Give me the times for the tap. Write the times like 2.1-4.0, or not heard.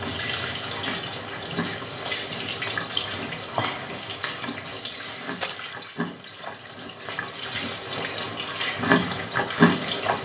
0.0-10.2.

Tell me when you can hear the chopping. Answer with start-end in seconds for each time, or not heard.
not heard.